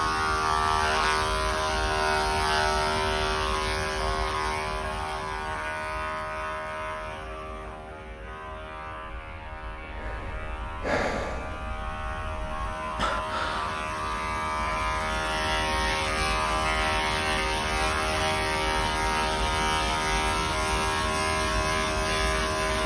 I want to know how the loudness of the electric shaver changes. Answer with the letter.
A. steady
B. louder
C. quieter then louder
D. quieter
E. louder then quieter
C.